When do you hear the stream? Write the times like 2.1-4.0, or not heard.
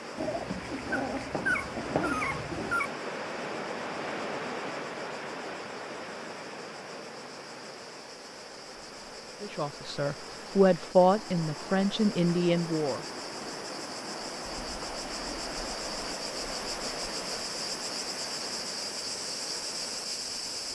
0.0-20.7.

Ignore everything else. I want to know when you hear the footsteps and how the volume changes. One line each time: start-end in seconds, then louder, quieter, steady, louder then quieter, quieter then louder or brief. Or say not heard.
not heard.